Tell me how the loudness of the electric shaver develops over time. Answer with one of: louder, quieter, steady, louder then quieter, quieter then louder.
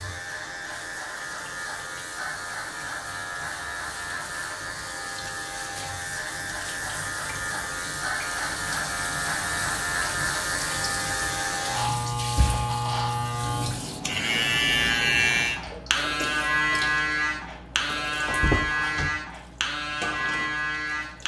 louder.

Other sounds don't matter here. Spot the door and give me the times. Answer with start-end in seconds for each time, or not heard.
18.2-19.1.